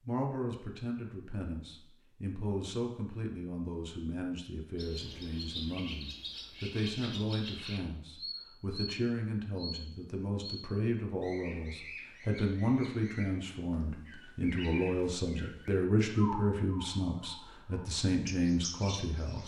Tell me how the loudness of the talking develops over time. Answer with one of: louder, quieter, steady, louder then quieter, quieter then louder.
louder.